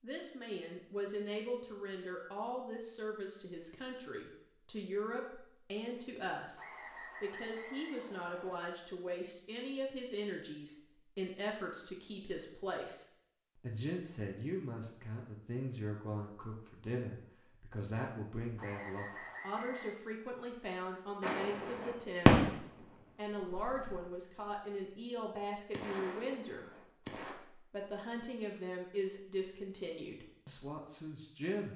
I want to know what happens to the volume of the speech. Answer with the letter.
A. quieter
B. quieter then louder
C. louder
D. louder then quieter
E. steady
E.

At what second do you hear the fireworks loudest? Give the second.
22 s.